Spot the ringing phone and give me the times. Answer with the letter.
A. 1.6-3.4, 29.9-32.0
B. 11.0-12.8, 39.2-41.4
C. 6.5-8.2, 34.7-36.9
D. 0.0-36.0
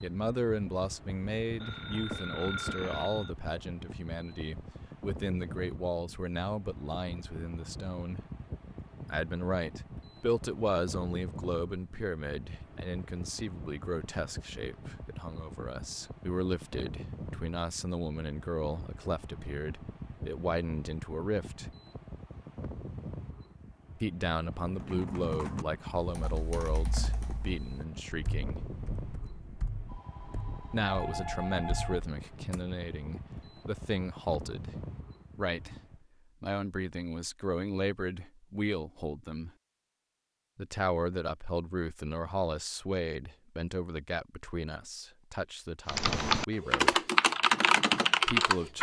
A.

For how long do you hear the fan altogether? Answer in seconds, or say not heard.
36 s.